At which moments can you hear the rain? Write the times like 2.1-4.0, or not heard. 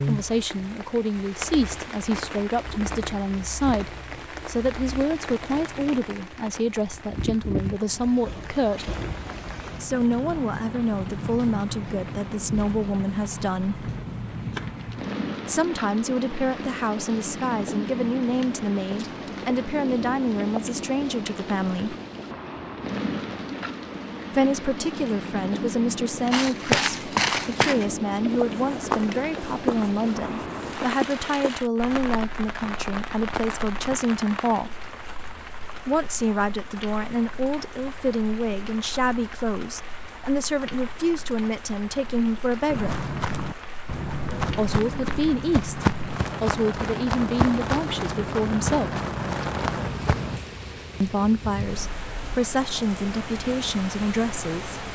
0.0-54.8.